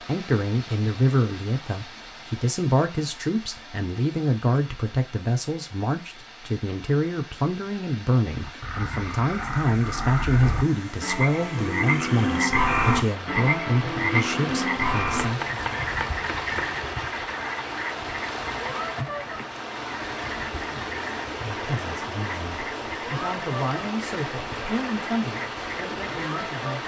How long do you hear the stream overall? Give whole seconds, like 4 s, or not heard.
27 s.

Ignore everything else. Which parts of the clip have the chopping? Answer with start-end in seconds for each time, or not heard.
15.2-16.9.